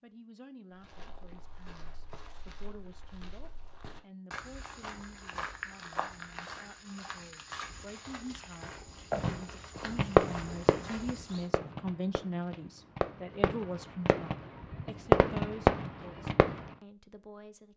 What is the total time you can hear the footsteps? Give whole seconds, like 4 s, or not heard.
11 s.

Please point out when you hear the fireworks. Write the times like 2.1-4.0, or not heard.
9.2-16.6.